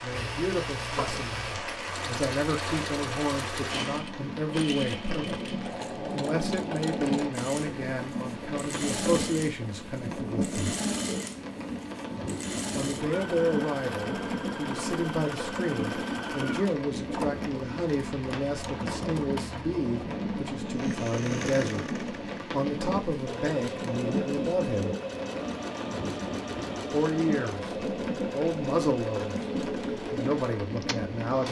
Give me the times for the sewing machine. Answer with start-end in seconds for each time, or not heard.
0.1-31.4.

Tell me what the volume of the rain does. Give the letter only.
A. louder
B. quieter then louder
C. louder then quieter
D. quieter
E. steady
E.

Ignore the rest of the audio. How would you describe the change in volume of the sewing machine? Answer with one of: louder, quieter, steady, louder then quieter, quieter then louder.
steady.